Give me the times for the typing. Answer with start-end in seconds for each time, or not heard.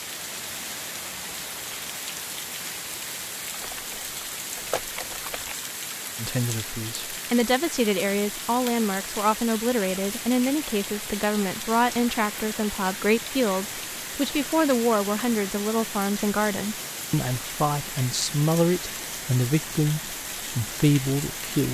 3.5-5.5.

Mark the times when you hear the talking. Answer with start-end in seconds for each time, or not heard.
6.2-21.7.